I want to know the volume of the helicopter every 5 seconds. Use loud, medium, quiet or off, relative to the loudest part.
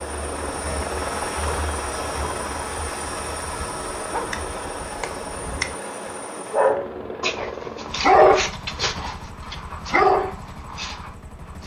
loud, medium, quiet.